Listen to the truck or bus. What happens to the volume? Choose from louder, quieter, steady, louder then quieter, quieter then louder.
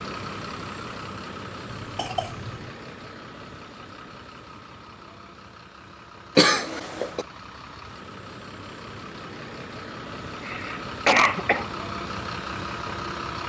quieter then louder.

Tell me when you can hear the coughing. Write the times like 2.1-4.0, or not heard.
1.7-2.7, 6.3-7.2, 10.4-11.7.